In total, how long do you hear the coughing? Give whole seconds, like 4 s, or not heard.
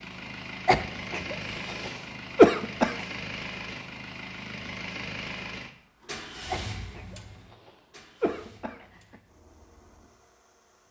5 s.